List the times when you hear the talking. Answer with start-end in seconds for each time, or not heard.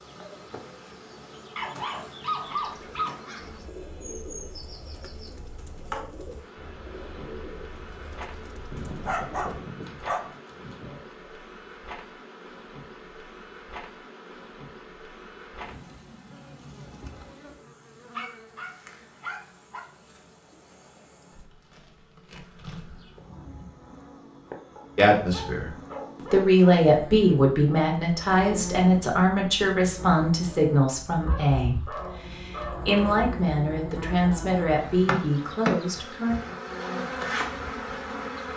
24.9-25.7, 26.3-36.4.